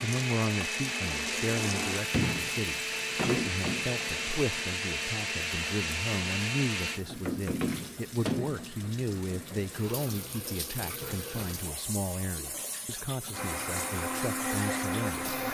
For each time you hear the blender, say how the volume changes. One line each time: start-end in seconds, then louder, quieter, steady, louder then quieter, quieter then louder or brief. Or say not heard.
0.0-7.0 steady
13.3-15.4 brief.